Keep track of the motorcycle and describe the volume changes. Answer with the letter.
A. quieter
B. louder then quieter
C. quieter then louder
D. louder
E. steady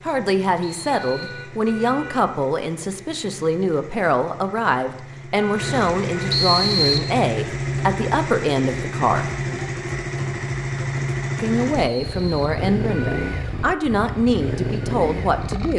D.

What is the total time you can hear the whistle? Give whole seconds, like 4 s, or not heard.
2 s.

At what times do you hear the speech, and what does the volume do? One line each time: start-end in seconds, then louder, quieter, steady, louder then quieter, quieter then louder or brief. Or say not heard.
0.0-9.3 steady
11.3-15.7 steady.